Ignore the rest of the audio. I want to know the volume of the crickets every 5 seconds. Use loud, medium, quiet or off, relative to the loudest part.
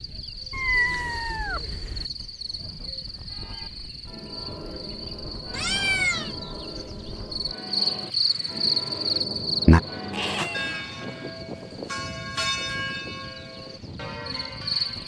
quiet, loud, medium.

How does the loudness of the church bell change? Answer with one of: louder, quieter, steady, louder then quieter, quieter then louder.
louder.